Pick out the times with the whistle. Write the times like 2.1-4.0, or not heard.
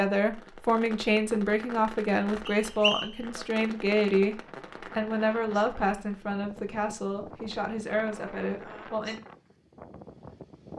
2.5-3.2.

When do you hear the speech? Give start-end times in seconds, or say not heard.
0.0-9.2.